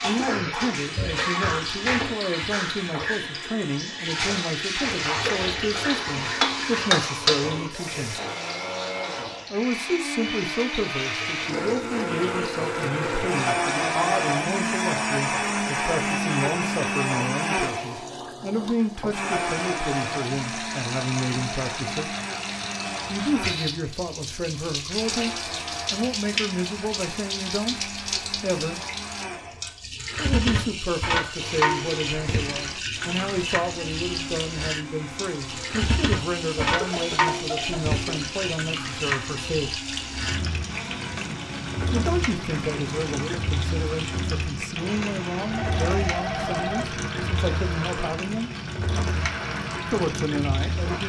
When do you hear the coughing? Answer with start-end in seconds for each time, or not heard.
36.5-38.0.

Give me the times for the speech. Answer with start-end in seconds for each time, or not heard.
0.0-8.2, 9.5-22.1, 23.1-28.8, 30.1-39.8, 41.9-48.5, 49.9-51.0.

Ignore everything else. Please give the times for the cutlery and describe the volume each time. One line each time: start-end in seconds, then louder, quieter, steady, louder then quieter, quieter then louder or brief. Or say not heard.
not heard.